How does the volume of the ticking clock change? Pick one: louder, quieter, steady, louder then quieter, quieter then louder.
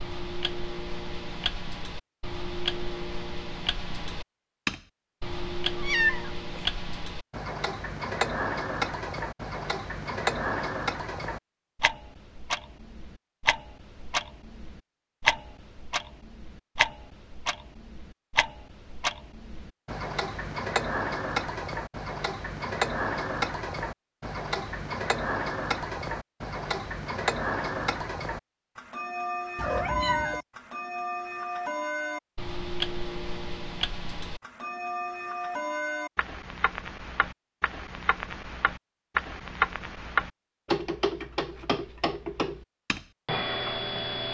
steady.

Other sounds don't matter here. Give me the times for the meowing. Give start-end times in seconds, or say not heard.
5.8-6.6, 29.6-30.4.